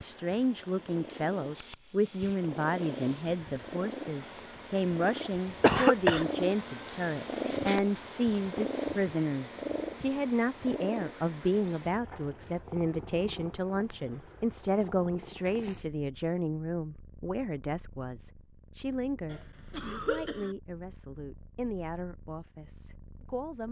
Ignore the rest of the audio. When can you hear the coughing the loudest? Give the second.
6 s.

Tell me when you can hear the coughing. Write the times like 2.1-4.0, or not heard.
5.6-6.2, 19.3-20.6.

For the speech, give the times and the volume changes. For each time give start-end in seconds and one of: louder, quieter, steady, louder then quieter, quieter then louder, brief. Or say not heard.
0.0-23.6 quieter.